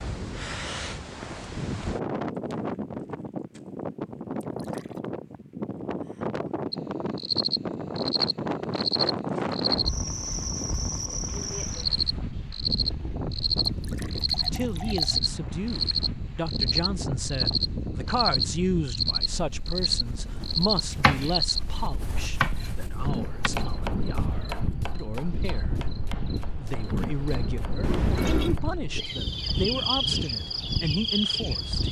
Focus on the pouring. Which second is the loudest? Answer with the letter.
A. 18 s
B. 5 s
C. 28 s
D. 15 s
C.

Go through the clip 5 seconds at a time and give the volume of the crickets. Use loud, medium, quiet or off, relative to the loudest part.
off, loud, loud, loud, medium, medium, loud.